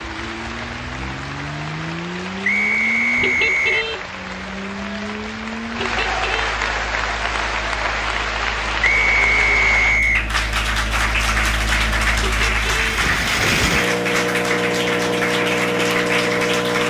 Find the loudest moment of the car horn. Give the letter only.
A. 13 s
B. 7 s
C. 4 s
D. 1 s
C.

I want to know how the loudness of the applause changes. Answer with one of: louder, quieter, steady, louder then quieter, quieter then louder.
louder.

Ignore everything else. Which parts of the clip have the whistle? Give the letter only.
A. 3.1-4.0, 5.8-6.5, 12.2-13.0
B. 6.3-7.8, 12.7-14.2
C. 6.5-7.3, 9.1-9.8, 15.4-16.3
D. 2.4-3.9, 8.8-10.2
D.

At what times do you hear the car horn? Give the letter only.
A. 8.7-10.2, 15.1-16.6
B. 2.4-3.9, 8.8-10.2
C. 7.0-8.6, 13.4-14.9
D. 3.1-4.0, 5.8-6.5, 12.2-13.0
D.